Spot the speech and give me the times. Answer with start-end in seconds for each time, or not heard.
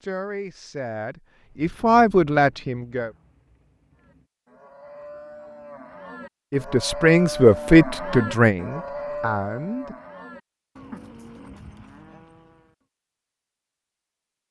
0.0-3.1, 6.5-9.9.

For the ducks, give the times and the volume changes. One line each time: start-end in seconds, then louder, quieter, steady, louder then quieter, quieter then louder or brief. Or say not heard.
not heard.